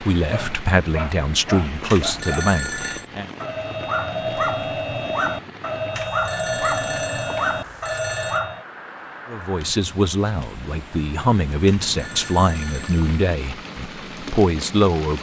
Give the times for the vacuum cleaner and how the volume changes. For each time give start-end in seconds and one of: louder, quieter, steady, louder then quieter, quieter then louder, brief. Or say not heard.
not heard.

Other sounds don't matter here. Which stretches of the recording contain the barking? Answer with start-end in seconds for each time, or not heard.
0.2-8.7.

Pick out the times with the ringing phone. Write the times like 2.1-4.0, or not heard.
1.9-3.0, 6.0-8.4, 11.7-13.2.